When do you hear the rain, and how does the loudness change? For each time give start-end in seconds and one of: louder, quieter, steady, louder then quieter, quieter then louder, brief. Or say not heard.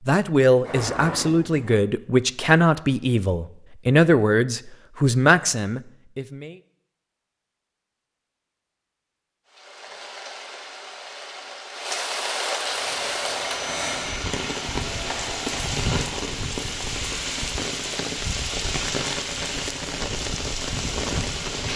9.4-21.7 louder.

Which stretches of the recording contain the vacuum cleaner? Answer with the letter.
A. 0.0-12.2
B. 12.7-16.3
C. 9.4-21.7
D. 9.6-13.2
B.